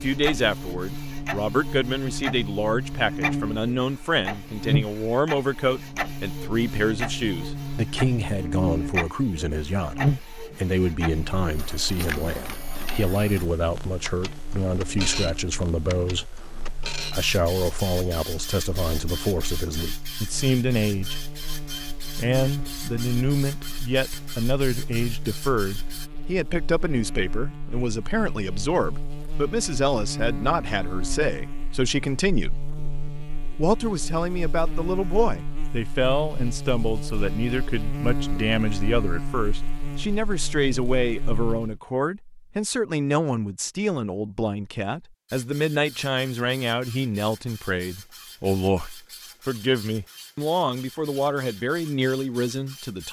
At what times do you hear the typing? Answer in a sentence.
The typing can't be heard in this clip.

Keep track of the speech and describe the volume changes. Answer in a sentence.
The loudness of the speech stays about the same.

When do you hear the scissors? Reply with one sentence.
The scissors can't be heard in this clip.